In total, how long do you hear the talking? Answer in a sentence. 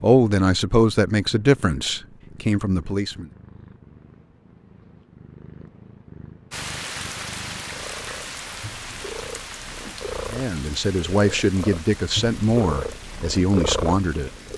The talking can be heard for 7 seconds in total.